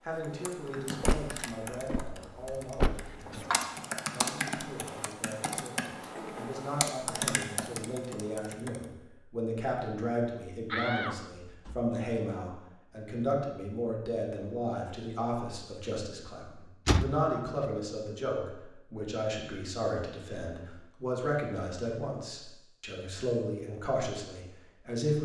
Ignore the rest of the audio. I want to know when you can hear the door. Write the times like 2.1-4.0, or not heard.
1.1-3.5, 10.7-11.8, 16.9-17.7.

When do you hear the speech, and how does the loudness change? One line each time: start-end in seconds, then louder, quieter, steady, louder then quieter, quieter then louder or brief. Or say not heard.
0.0-25.1 louder.